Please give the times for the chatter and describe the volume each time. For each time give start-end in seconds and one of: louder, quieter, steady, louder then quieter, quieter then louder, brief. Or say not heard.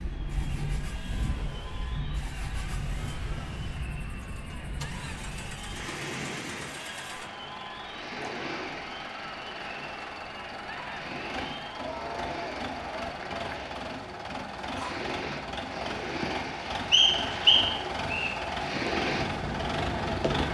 0.0-13.7 louder.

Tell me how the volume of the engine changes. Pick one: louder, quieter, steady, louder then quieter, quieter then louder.
louder.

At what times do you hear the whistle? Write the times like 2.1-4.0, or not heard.
16.9-18.3.